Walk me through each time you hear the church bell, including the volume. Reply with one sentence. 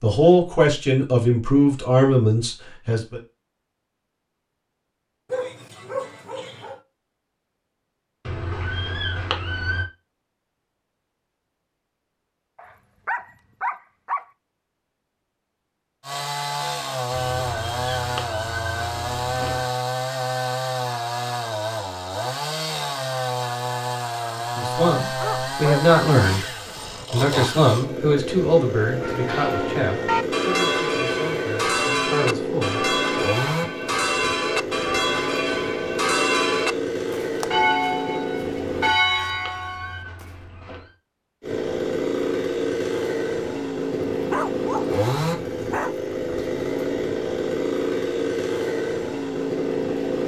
The church bell can be heard from 28.8 to 40.2 s, at a steady volume.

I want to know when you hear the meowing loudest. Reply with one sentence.
The loudest moment of the meowing is at 9 seconds.